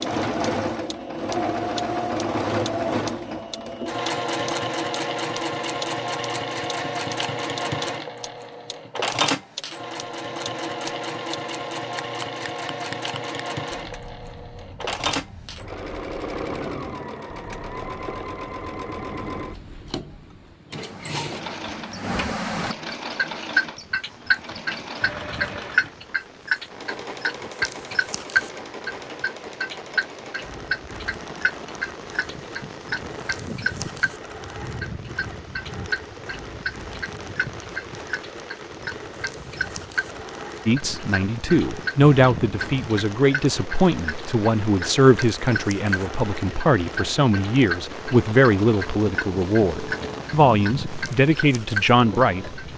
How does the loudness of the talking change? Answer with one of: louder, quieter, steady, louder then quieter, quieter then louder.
steady.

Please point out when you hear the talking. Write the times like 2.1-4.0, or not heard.
40.6-52.6.